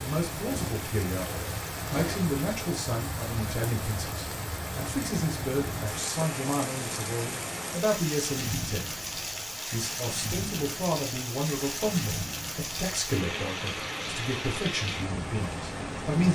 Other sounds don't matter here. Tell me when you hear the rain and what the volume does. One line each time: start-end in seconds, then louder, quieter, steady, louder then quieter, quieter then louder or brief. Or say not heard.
0.0-16.3 steady.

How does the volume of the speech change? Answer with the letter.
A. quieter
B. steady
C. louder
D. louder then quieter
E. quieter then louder
B.